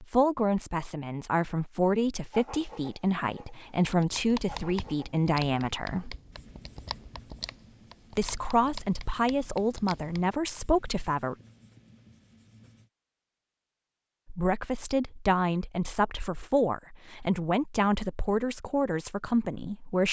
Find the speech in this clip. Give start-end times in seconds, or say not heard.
0.0-6.2, 8.2-11.3, 14.3-20.0.